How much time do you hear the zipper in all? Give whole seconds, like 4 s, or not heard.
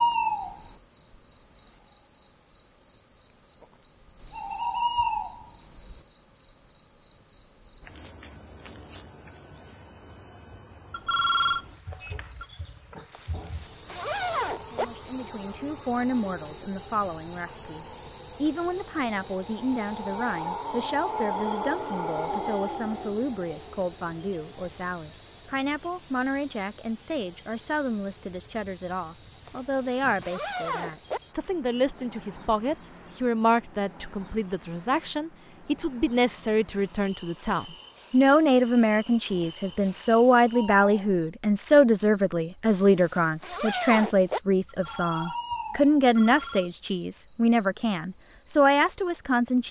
5 s.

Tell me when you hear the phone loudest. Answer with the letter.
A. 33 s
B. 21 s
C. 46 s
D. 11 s
D.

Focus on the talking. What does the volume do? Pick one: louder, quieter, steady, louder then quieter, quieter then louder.
louder.